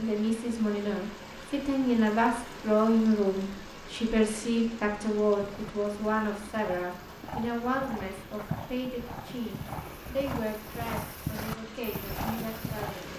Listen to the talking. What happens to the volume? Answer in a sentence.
The volume of the talking goes down.